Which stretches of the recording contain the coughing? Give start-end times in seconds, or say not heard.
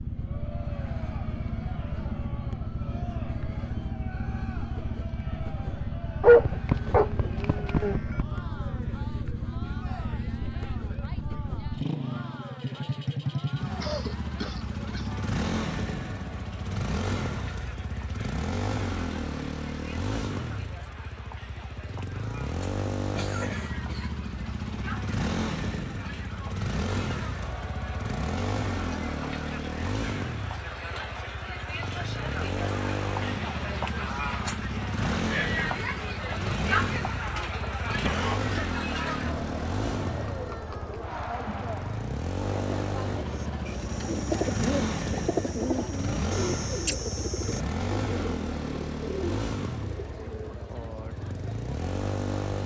13.8-15.2, 22.9-24.1, 38.0-38.5.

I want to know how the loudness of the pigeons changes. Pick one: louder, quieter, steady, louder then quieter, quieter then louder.
quieter.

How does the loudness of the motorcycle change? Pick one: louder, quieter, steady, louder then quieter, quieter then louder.
steady.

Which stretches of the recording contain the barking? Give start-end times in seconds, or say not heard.
6.2-8.2.